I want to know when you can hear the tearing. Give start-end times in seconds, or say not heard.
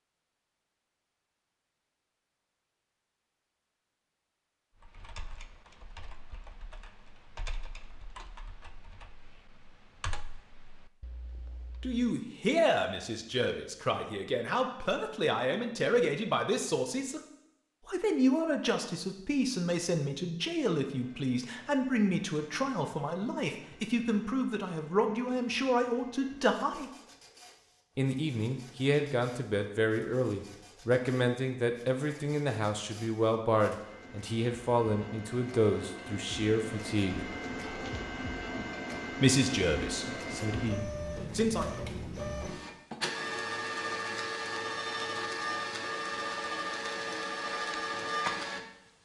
not heard.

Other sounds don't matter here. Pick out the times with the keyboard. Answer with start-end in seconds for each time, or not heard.
4.8-12.1.